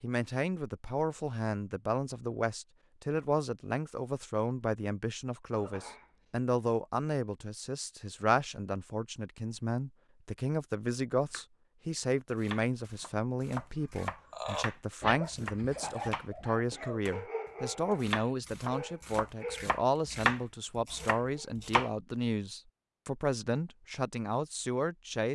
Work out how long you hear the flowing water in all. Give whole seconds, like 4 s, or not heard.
not heard.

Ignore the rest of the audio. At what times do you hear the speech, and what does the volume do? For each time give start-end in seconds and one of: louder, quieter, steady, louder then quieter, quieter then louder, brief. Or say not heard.
0.0-25.3 steady.